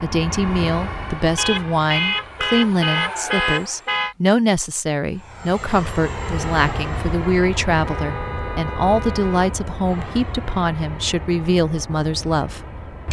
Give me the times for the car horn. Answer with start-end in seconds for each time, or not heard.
1.4-4.2, 7.8-9.6.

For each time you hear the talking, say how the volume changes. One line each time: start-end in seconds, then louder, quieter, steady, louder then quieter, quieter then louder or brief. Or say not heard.
0.0-13.0 steady.